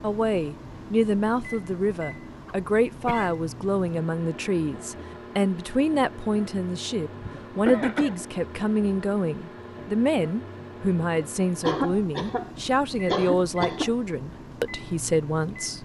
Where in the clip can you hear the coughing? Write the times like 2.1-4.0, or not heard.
2.5-3.4, 7.2-8.2, 11.6-13.9.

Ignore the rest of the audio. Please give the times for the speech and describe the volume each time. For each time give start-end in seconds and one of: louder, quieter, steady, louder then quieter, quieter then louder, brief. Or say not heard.
0.0-15.8 steady.